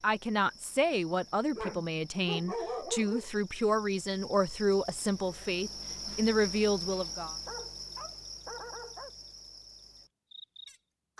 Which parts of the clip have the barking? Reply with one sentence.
The barking can be heard from 1.6 to 3.3 s and from 7.5 to 9.1 s.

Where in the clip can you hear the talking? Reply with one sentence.
The talking can be heard from 0.0 to 7.3 s.